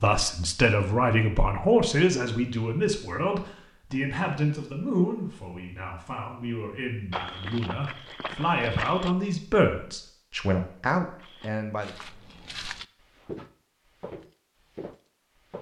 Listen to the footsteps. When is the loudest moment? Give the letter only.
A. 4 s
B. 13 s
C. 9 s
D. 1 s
C.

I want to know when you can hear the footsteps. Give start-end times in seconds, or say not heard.
7.1-9.2, 11.2-15.5.